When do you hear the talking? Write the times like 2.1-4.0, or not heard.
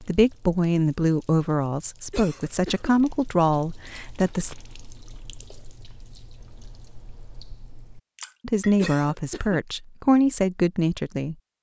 0.0-4.5, 8.4-11.3.